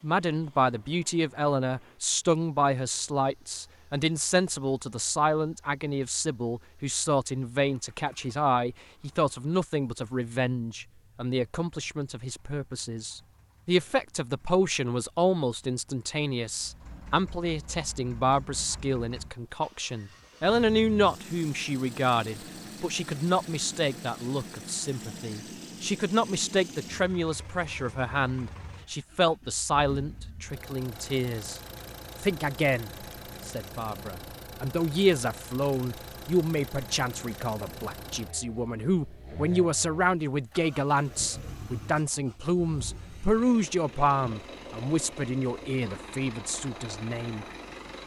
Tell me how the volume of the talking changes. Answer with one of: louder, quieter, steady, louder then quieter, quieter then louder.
steady.